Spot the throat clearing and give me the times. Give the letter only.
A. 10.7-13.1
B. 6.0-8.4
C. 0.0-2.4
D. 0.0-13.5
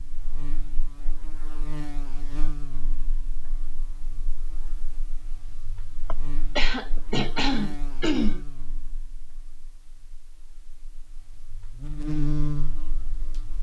B.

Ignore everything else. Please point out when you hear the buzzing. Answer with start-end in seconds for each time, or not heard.
0.0-13.5.